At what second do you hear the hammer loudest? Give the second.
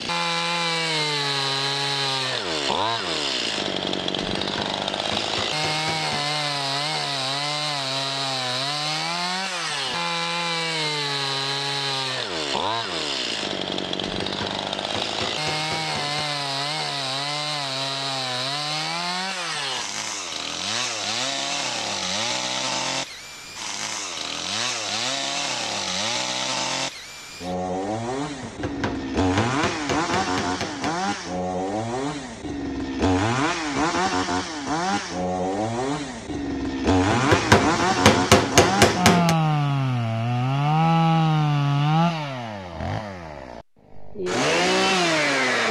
38 s.